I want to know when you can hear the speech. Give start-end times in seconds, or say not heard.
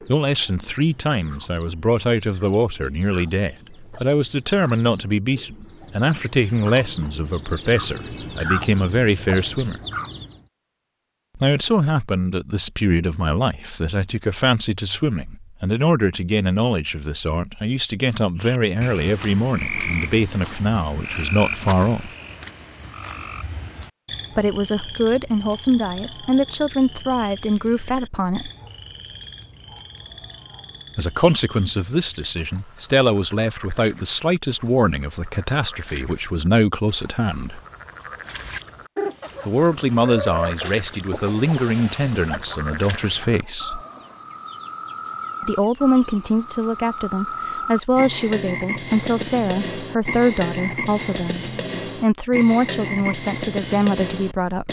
0.1-9.8, 11.3-22.1, 24.4-28.5, 30.9-37.6, 39.5-43.9, 45.4-54.6.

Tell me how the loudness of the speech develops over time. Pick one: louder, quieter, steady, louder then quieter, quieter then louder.
steady.